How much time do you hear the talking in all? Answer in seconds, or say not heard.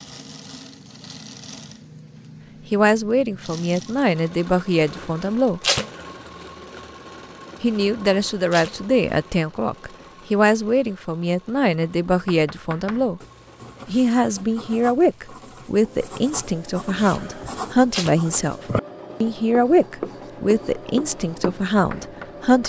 17 s.